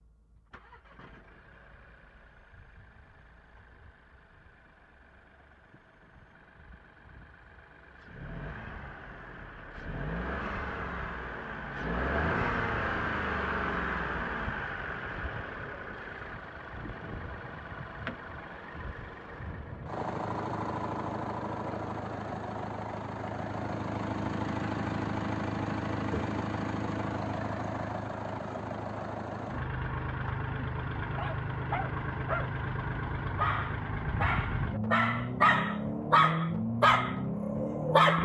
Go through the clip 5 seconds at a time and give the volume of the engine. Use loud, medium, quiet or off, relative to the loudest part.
quiet, quiet, loud, medium, loud, loud, loud, loud.